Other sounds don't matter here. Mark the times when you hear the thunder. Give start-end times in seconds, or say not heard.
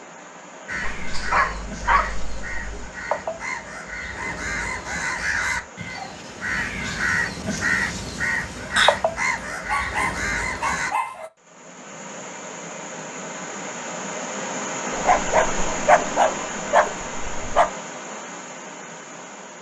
not heard.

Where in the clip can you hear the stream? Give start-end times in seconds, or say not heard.
0.0-19.5.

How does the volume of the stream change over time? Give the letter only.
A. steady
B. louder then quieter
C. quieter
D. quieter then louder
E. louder
E.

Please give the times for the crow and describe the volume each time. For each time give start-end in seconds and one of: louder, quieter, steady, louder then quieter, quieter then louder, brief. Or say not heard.
0.7-10.9 louder.